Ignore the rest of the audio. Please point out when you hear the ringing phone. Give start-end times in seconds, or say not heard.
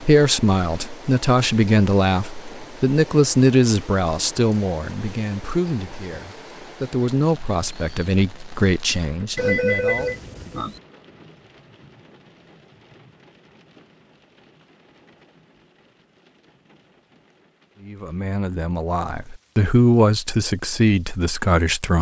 9.3-10.8.